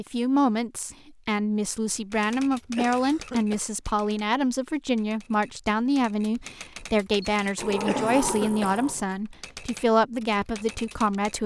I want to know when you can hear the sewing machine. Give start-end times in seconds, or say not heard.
not heard.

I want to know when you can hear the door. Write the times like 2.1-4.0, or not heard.
7.5-9.1.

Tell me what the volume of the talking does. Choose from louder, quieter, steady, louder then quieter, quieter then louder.
steady.